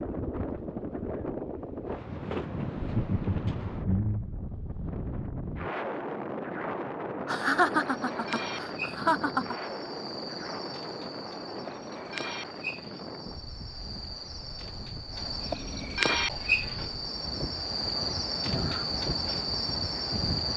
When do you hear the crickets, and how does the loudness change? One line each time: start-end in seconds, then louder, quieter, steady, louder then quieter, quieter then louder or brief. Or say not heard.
7.7-20.5 louder.